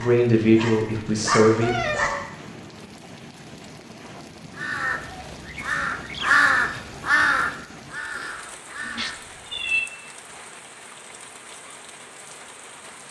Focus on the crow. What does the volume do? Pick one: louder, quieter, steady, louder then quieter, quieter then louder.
louder then quieter.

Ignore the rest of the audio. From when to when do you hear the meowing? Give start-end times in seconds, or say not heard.
1.6-2.2, 8.8-9.9.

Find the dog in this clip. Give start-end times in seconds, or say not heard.
0.0-2.6.